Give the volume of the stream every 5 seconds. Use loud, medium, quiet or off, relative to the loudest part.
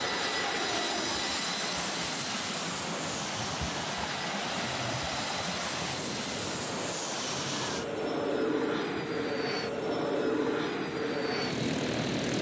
loud, loud, medium.